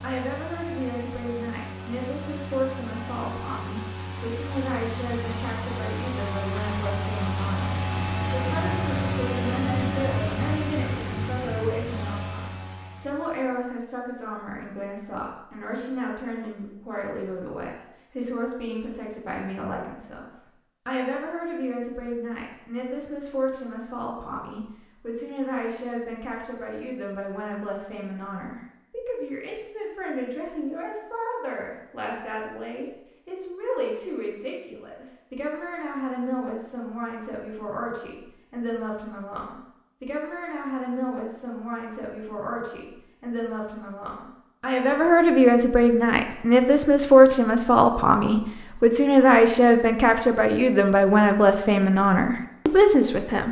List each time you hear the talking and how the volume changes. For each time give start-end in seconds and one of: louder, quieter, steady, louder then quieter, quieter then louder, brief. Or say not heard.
0.0-53.4 louder.